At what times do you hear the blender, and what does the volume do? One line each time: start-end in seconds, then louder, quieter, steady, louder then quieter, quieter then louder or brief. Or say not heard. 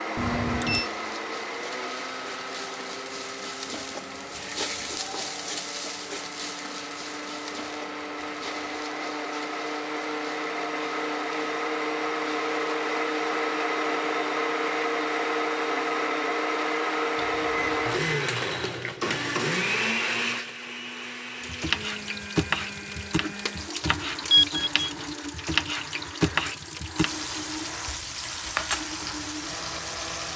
0.0-30.3 louder then quieter.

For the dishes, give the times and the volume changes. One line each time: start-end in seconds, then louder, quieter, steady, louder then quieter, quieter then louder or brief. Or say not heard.
not heard.